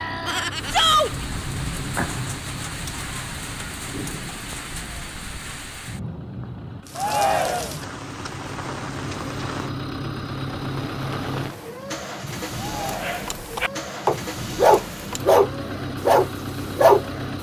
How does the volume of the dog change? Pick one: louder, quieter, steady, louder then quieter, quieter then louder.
louder.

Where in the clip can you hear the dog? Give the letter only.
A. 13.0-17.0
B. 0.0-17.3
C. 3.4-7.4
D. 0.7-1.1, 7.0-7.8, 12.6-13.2
A.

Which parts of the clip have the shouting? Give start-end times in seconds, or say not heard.
0.7-1.1, 7.0-7.8, 12.6-13.2.